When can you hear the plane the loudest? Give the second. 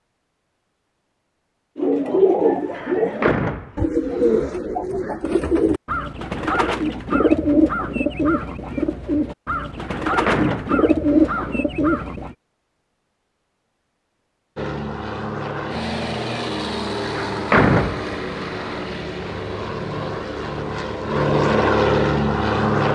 22 s.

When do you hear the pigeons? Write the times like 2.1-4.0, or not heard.
1.8-12.3.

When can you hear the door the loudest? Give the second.
18 s.